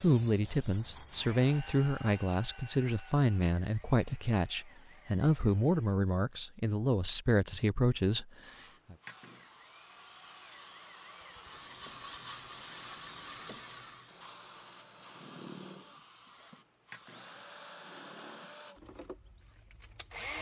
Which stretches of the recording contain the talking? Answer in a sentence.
The talking can be heard from 0.0 to 8.9 s.